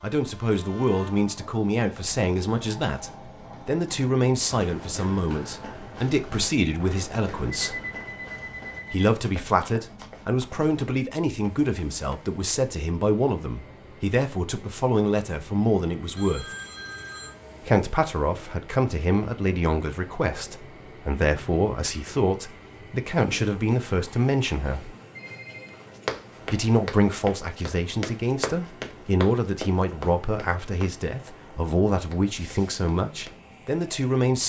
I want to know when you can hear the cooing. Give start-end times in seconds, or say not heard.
not heard.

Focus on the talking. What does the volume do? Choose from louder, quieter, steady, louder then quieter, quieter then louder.
steady.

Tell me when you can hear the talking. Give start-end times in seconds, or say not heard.
0.0-7.8, 8.9-16.4, 17.6-24.9, 26.5-34.4.